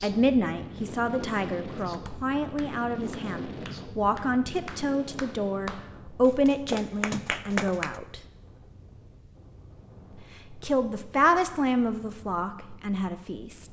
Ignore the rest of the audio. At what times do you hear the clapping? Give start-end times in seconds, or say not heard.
1.9-8.0.